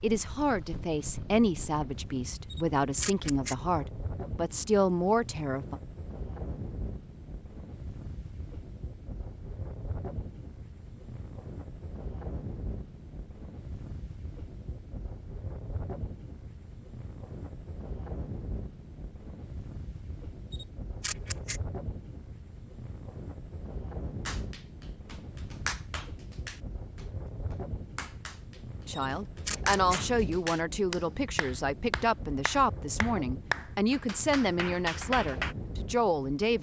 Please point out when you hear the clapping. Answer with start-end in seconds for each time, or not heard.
24.2-35.5.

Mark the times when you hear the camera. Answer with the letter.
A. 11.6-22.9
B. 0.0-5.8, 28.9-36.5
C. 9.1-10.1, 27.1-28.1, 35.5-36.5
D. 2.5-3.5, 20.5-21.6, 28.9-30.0
D.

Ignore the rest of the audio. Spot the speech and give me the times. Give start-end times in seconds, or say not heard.
0.0-5.8, 28.9-36.5.